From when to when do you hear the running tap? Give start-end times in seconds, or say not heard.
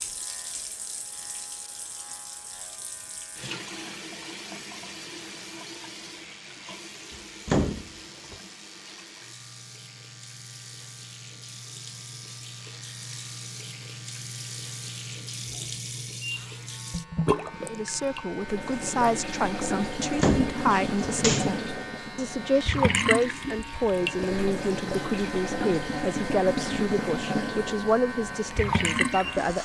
0.0-29.6.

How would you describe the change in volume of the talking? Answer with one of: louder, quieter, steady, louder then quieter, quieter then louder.
steady.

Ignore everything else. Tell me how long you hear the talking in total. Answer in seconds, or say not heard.
12 s.